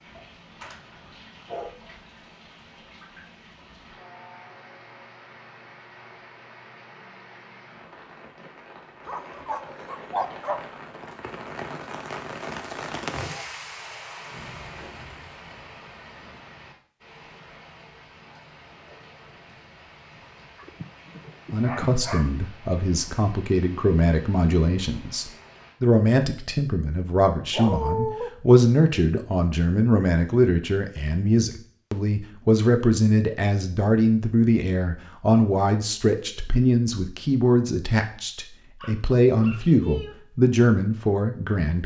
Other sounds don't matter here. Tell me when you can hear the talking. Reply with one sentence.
You can hear the talking from 21.5 to 41.8 s.